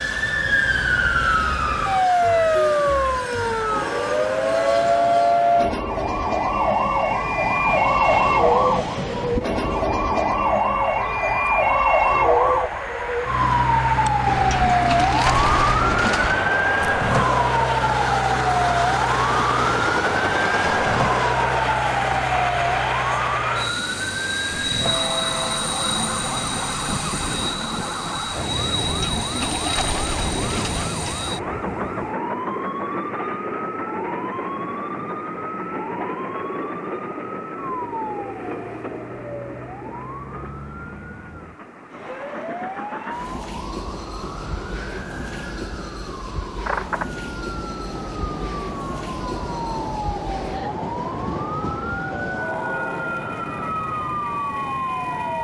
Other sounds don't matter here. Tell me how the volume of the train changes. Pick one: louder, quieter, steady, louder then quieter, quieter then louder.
louder then quieter.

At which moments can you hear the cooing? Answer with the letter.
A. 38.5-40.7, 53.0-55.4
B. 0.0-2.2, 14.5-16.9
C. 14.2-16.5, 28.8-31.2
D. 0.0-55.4
C.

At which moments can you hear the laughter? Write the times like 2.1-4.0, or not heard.
not heard.